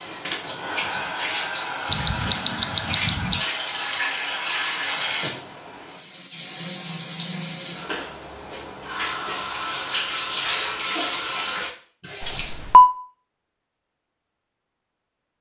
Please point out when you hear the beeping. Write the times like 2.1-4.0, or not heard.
1.9-3.5, 12.2-12.9.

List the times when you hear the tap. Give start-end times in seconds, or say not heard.
0.0-12.6.